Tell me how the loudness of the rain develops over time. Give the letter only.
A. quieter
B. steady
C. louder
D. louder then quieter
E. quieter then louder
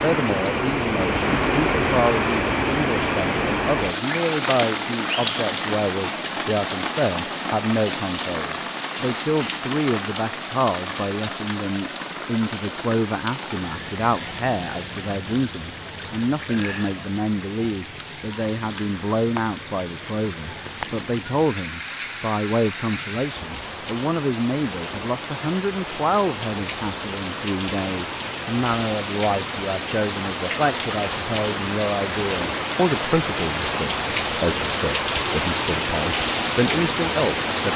E.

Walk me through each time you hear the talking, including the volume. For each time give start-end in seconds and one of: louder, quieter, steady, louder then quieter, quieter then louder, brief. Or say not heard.
0.0-37.7 steady.